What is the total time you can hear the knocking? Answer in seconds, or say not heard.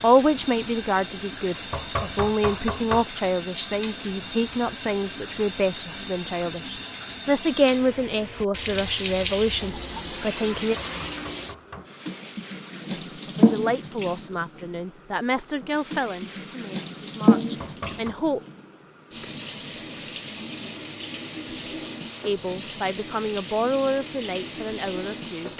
3 s.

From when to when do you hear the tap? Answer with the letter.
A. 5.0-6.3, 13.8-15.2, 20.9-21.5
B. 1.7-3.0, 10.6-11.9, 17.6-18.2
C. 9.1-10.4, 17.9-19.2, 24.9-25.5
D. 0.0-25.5
D.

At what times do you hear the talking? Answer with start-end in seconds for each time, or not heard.
0.0-10.8, 13.2-18.4, 22.2-25.5.